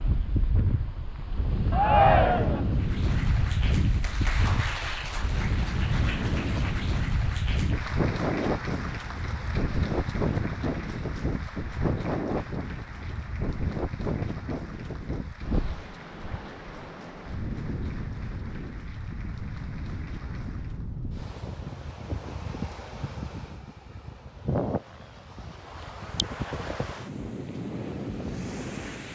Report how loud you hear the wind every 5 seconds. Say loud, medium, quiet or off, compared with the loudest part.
loud, loud, loud, medium, medium, medium.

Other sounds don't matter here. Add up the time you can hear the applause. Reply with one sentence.
You can hear the applause for 18 seconds altogether.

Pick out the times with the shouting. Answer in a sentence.
You can hear the shouting from 1.7 to 2.6 s.